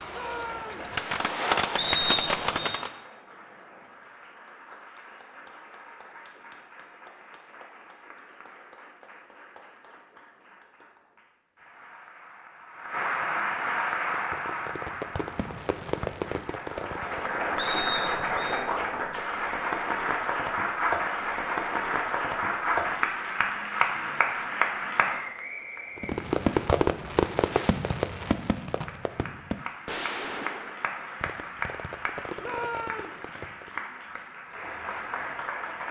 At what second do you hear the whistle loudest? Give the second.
2 s.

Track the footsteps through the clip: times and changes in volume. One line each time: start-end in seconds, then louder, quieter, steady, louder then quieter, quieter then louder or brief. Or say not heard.
not heard.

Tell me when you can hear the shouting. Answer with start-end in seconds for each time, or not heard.
0.1-0.9, 32.4-33.1.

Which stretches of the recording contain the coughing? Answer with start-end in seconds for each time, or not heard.
not heard.